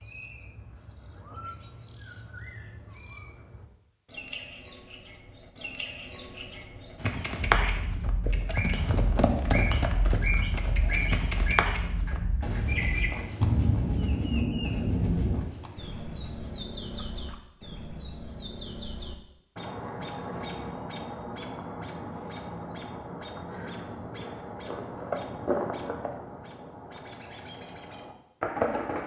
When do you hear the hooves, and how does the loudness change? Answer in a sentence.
The hooves can be heard from 7.0 to 17.4 s, getting quieter.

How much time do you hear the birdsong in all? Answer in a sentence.
The birdsong can be heard for 29 seconds in total.